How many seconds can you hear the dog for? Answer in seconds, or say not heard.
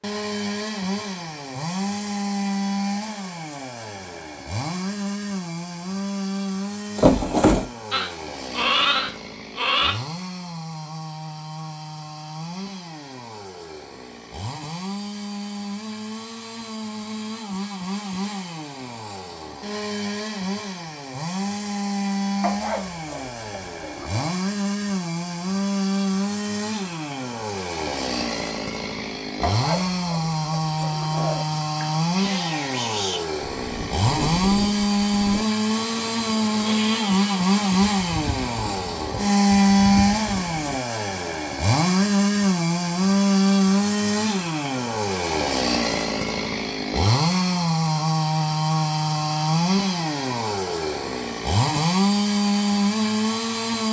4 s.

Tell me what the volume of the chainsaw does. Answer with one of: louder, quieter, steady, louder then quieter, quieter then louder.
louder.